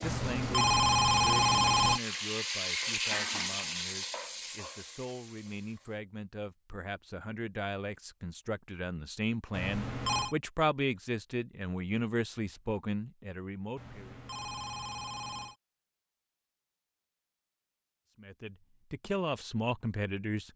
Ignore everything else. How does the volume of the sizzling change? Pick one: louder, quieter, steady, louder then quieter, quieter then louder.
louder then quieter.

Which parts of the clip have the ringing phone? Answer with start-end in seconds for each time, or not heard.
0.0-2.0, 9.5-10.3, 13.8-15.6.